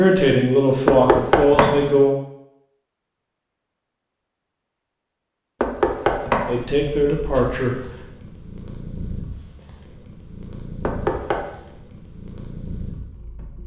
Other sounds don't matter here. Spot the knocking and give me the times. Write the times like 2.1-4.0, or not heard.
0.8-1.9, 5.6-6.7, 10.8-11.5.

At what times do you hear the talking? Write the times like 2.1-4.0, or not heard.
0.0-2.1, 6.5-7.8.